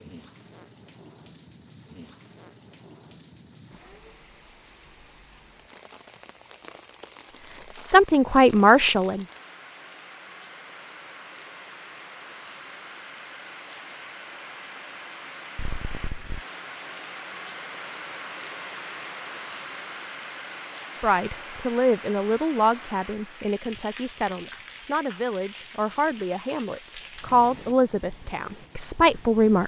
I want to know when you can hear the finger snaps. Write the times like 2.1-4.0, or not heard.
15.6-16.4.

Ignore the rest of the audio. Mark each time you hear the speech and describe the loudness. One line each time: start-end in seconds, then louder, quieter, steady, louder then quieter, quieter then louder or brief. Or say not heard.
7.7-9.2 brief
21.0-29.6 quieter then louder.